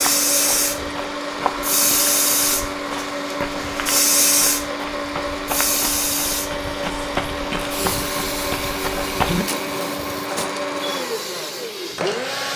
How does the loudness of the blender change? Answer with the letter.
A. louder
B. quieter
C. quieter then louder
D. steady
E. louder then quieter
D.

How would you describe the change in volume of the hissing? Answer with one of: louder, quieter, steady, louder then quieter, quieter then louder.
quieter.